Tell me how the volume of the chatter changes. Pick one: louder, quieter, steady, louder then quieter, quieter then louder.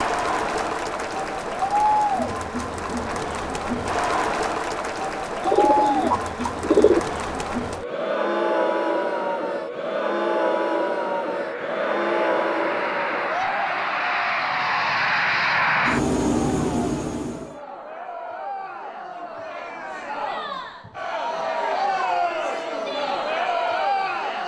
quieter then louder.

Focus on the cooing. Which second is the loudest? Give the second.
7 s.